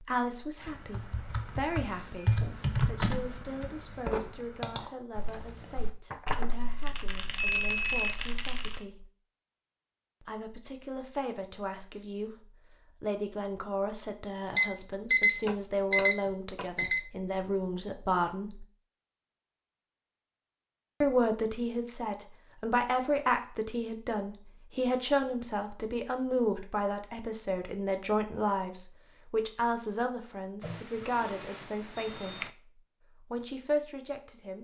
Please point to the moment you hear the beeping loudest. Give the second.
16 s.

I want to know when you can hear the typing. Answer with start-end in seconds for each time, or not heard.
0.6-8.8.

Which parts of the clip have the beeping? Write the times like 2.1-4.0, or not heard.
6.1-8.2, 14.6-17.1, 30.6-32.5.